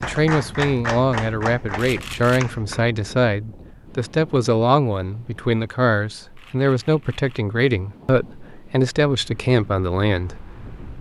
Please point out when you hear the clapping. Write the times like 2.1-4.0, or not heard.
0.0-2.9.